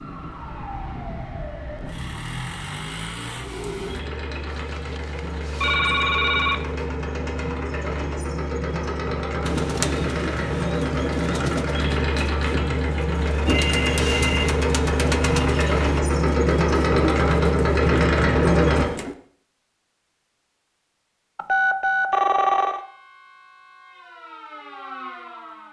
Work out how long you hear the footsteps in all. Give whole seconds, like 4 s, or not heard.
not heard.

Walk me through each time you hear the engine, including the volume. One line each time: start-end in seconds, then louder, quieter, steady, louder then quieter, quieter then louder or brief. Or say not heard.
1.9-18.9 louder.